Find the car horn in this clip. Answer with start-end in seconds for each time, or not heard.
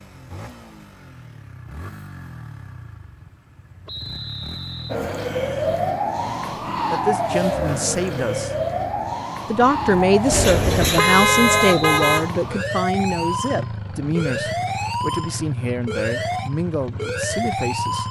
10.3-12.3.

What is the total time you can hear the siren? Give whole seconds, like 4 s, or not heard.
13 s.